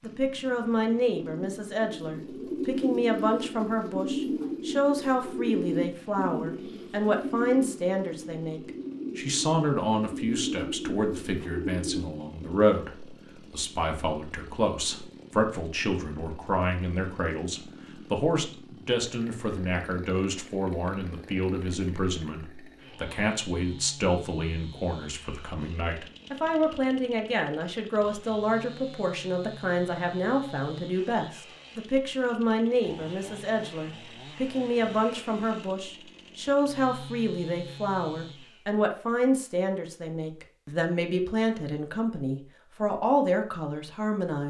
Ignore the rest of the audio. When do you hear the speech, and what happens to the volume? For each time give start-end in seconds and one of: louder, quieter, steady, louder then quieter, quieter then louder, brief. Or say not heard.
0.0-44.4 steady.